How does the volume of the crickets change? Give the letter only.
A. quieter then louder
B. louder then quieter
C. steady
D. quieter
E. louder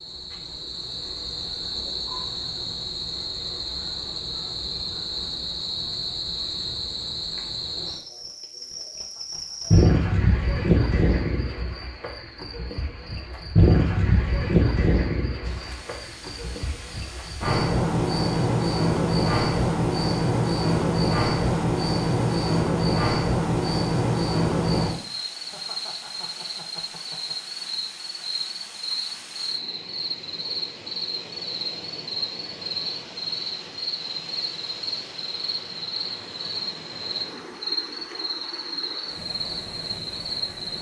B.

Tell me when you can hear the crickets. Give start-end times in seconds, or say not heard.
0.0-40.7.